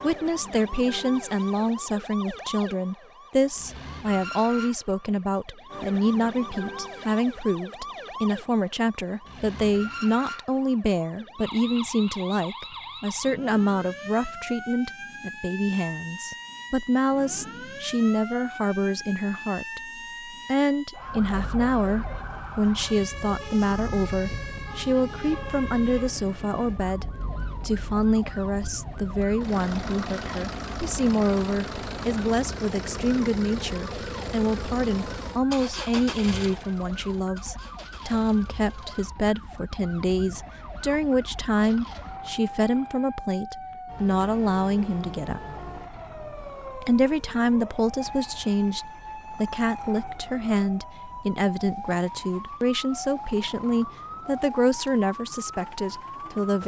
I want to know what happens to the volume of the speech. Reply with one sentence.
The volume of the speech stays about the same.